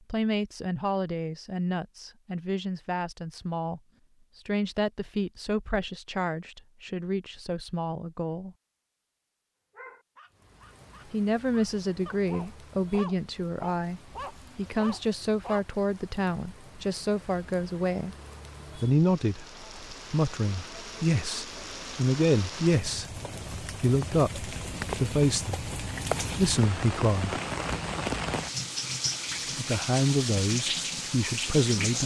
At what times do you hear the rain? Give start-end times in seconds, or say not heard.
10.3-32.0.